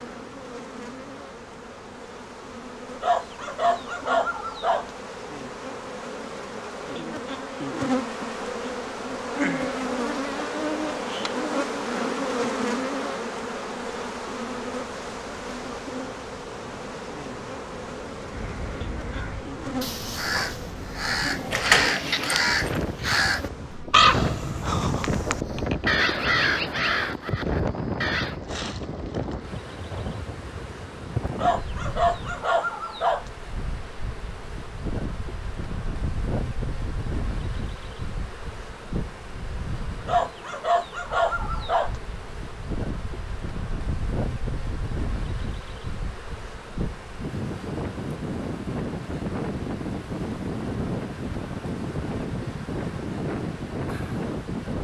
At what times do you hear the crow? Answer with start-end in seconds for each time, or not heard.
18.3-28.4.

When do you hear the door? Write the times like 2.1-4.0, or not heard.
21.5-22.8.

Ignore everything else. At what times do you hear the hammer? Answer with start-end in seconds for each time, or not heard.
not heard.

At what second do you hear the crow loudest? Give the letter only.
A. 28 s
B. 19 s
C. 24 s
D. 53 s
C.